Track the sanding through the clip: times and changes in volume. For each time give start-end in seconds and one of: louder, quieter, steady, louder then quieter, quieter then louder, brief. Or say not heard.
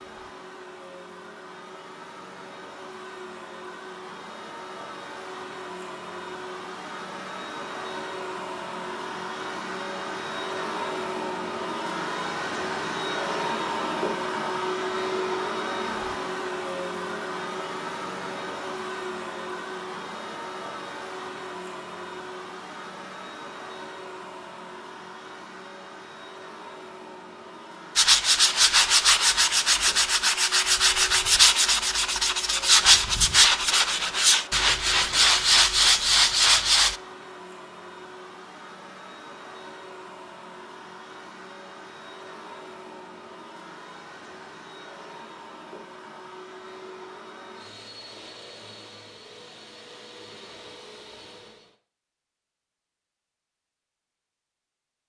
27.9-37.0 steady.